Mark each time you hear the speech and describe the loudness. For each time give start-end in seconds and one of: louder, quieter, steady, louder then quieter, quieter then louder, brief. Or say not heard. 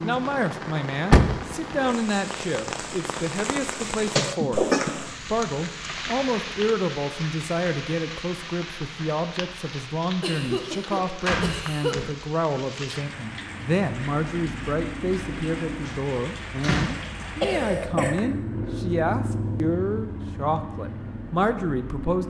0.0-22.2 steady.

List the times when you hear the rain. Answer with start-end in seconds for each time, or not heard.
0.0-17.9.